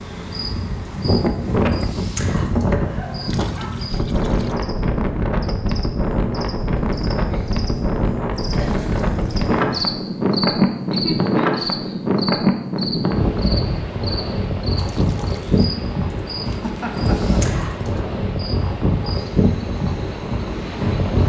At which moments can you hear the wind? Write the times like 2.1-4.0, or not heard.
0.0-21.2.